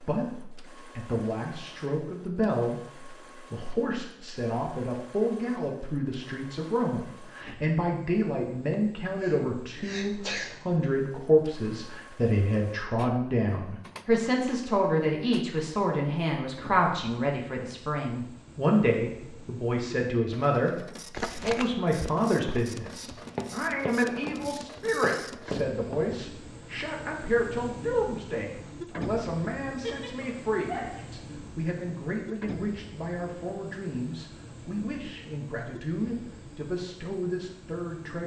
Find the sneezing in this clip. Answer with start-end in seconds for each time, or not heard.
8.7-10.6, 29.7-31.1.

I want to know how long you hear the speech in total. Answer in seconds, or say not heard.
38 s.